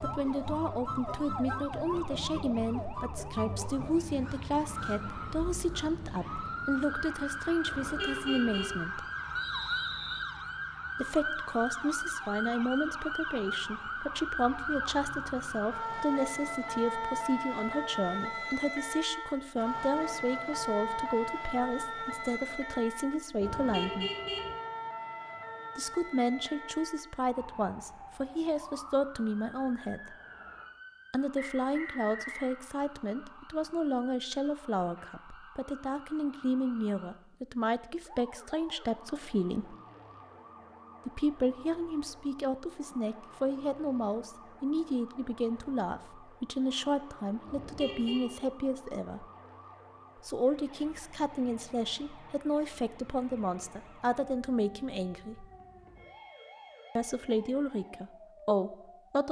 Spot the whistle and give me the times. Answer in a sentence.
You can hear the whistle from 9.3 to 10.3 s and from 31.4 to 32.5 s.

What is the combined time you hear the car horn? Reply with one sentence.
The car horn can be heard for 3 seconds in total.